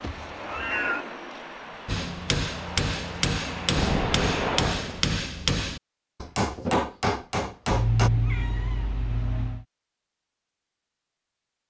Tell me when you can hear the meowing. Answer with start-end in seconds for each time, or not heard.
0.0-1.1, 7.7-9.7.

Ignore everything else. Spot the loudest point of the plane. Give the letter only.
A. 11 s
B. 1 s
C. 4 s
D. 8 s
C.